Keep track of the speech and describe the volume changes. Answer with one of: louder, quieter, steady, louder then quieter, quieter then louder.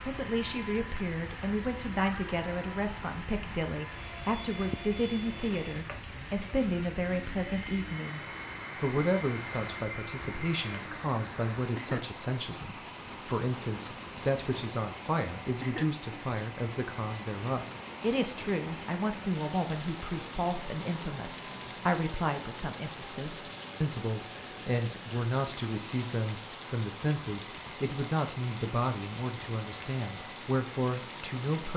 steady.